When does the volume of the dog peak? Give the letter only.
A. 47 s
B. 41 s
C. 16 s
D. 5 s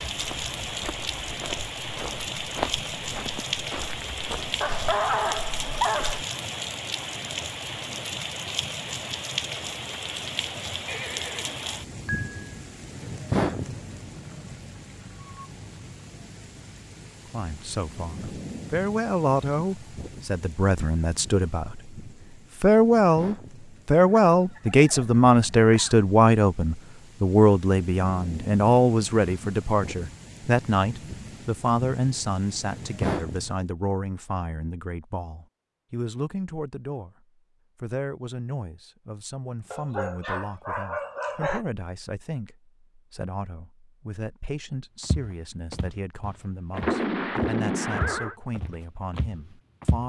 D.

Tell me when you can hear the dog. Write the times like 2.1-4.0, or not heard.
4.6-6.2, 39.7-41.6.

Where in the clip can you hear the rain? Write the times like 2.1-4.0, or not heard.
0.0-33.6.